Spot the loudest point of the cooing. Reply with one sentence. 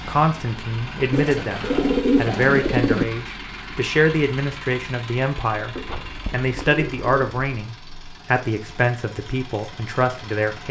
The loudest moment of the cooing is at 2 seconds.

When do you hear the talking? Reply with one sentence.
The talking can be heard from 0.1 to 10.6 s.